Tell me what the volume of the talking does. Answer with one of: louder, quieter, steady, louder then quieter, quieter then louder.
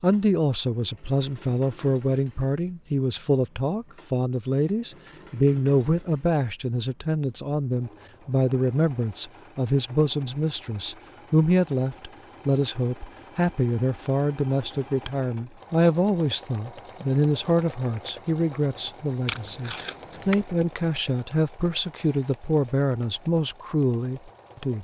steady.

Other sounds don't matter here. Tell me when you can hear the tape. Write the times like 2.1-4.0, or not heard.
19.2-20.4.